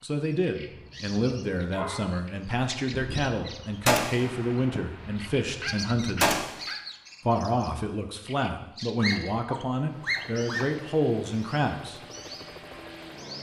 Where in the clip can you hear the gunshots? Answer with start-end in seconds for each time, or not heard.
2.9-6.6.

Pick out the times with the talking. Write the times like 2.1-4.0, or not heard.
0.0-6.3, 7.2-12.0.